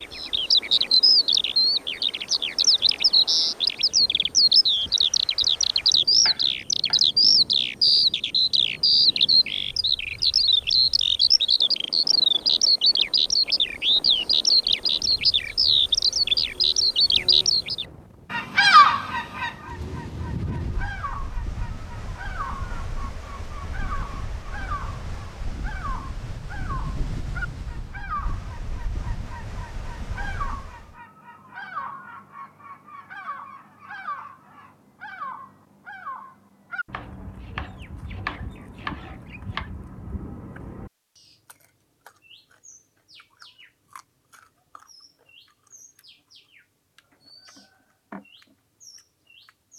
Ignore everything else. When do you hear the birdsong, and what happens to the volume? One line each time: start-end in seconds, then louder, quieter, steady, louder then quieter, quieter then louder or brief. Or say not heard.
0.0-49.7 quieter.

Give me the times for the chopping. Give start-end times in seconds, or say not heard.
6.2-7.0, 36.9-39.7.